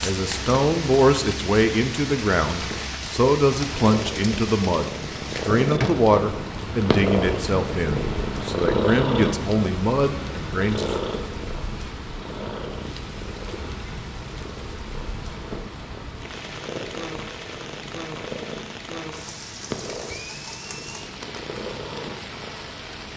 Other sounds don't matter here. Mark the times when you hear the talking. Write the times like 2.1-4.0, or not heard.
0.0-10.9.